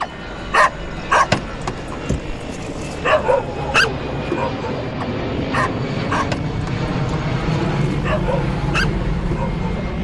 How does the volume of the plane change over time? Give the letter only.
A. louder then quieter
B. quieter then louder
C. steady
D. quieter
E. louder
E.